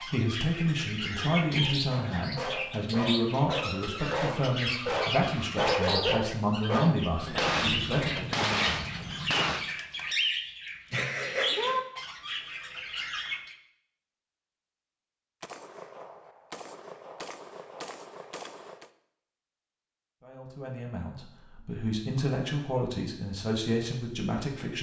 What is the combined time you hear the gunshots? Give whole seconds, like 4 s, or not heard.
6 s.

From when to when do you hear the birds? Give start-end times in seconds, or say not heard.
0.0-13.6.